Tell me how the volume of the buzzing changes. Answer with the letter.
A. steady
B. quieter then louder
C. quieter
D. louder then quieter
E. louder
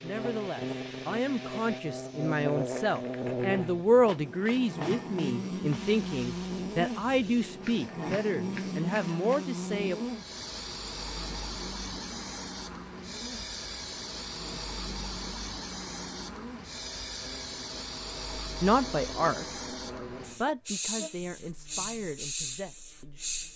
C.